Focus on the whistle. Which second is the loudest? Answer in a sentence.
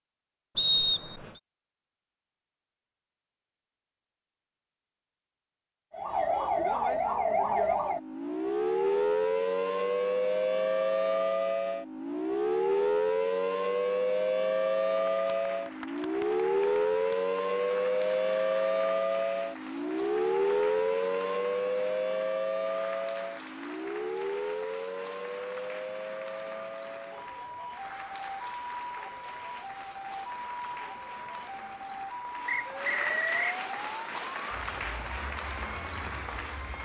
The loudest moment of the whistle is at 1 second.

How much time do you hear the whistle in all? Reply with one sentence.
The whistle can be heard for 2 seconds in total.